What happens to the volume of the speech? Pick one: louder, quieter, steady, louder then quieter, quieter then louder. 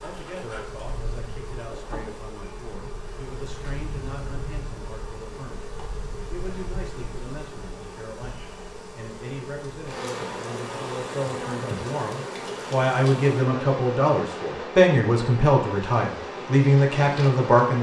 louder.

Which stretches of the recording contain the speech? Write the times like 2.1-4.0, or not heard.
0.0-5.7, 6.3-17.7.